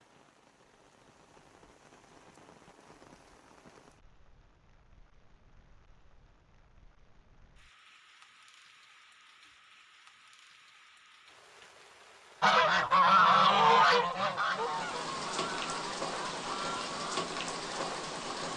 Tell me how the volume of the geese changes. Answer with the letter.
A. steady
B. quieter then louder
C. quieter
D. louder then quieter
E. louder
C.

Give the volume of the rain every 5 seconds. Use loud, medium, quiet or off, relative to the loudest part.
quiet, quiet, quiet, loud.